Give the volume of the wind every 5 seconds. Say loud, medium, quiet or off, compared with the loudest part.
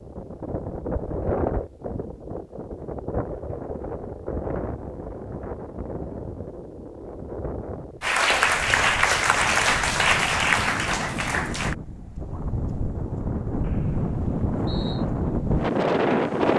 medium, quiet, medium, loud.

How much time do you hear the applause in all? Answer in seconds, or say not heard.
4 s.